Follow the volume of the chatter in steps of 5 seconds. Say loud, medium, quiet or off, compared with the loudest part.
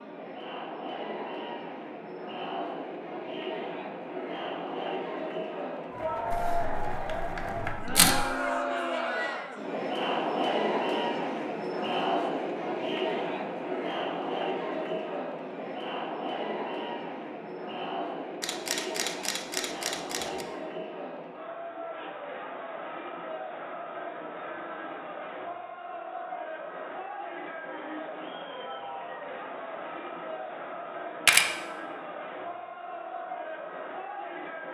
medium, loud, loud, medium, medium, medium, medium.